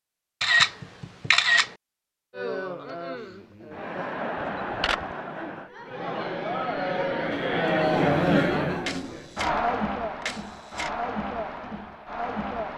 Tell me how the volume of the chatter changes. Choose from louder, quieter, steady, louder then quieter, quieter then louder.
louder then quieter.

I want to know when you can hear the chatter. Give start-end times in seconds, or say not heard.
2.3-12.7.